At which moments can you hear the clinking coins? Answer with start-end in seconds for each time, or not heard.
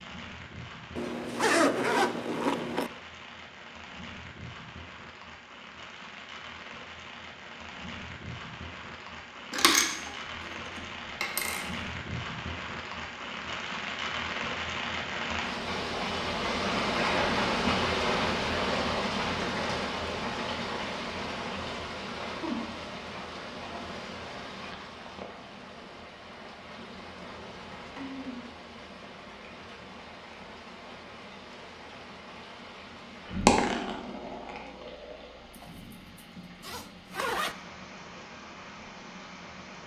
9.5-11.7, 33.4-35.6.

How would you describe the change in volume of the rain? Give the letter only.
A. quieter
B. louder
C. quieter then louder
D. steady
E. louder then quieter
E.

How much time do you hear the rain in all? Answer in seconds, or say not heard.
40 s.